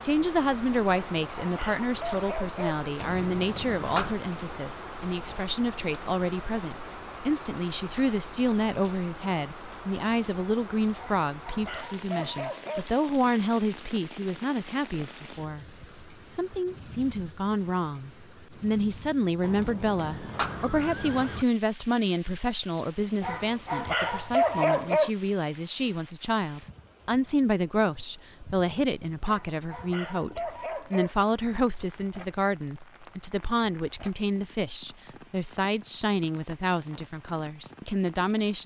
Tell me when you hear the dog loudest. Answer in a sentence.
The loudest moment of the dog is at 25 seconds.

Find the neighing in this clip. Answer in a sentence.
You can hear the neighing from 3.0 to 4.2 s and from 19.4 to 21.4 s.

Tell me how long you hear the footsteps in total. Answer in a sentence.
You can't hear the footsteps here.